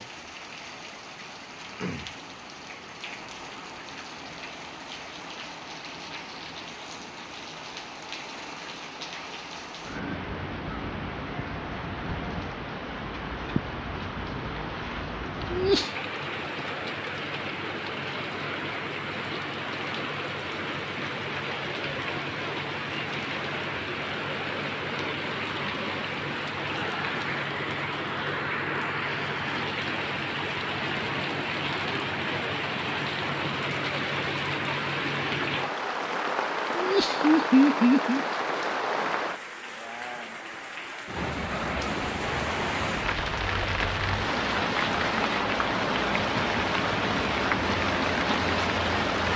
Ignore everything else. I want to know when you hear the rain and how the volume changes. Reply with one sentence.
The rain can be heard from 0.0 to 49.3 s, getting louder.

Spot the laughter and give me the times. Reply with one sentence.
You can hear the laughter from 15.5 to 15.9 s and from 36.8 to 38.2 s.